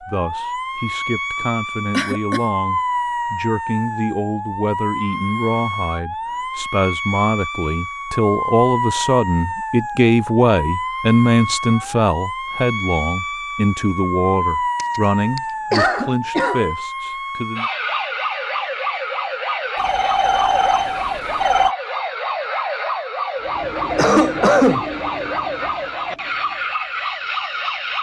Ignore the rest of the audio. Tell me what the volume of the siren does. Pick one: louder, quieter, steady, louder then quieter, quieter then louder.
steady.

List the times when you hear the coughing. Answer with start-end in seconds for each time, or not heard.
1.9-2.4, 14.8-16.6, 23.9-24.9.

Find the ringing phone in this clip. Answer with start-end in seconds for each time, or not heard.
19.8-21.8.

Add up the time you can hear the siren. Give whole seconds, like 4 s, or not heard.
28 s.